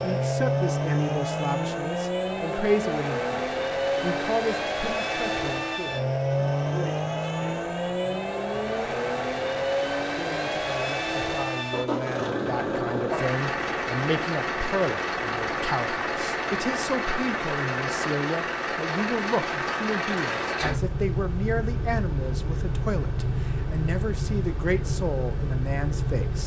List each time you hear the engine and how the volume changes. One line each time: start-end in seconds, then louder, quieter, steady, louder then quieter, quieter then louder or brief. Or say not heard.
0.0-26.4 steady.